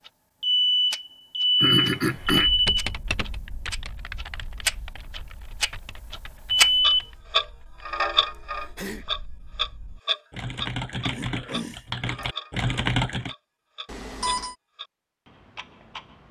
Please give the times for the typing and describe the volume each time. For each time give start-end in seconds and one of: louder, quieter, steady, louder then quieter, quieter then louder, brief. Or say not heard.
2.2-13.3 quieter then louder.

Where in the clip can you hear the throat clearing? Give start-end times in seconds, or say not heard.
1.6-2.5, 8.6-9.2, 11.1-12.2.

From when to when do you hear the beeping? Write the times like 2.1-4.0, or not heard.
0.4-2.8, 6.5-7.0, 13.8-14.6.